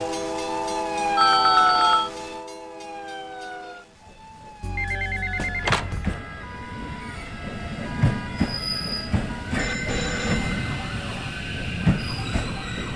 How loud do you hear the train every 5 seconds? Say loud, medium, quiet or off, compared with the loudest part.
medium, loud, loud.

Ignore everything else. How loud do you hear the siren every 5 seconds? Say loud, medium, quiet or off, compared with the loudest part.
loud, medium, medium.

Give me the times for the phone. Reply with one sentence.
You can hear the phone from 1.1 to 2.1 s, from 4.6 to 6.2 s and from 9.6 to 10.7 s.